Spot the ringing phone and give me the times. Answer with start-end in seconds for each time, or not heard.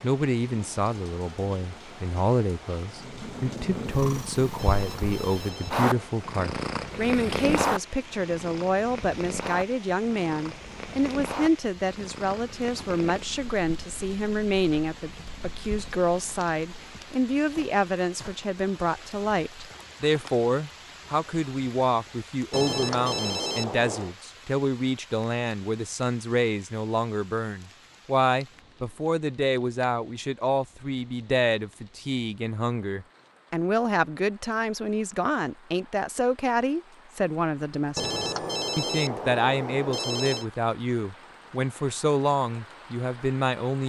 4.5-5.8, 22.5-24.1, 38.0-40.5.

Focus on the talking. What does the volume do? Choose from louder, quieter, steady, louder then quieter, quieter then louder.
steady.